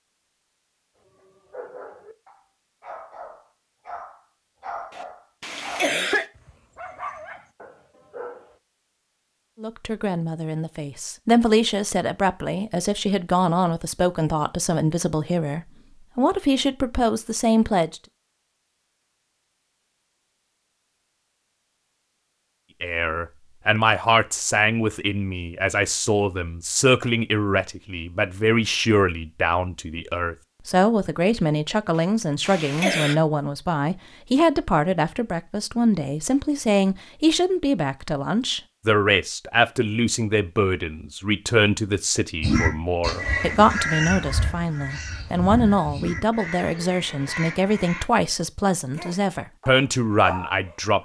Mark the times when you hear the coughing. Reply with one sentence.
You can hear the coughing from 5.0 to 6.2 s and from 31.9 to 33.1 s.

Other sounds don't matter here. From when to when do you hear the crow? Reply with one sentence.
You can hear the crow from 42.4 to 48.0 s.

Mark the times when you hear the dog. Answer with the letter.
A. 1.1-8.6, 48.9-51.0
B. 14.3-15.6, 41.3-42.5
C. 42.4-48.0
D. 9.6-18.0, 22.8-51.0
A.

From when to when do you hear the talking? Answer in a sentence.
The talking can be heard from 9.6 to 18.0 s and from 22.8 to 51.0 s.